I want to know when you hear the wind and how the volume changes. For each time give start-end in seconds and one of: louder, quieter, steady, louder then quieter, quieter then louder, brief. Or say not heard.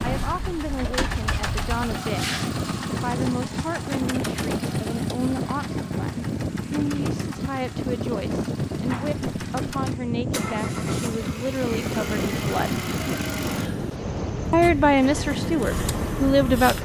0.2-16.7 steady.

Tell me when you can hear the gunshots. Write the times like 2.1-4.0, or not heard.
not heard.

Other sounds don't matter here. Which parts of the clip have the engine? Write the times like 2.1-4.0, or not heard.
0.0-16.7.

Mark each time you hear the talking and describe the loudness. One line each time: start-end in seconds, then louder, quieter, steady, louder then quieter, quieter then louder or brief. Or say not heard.
0.0-2.4 brief
3.0-12.8 steady
14.5-16.7 brief.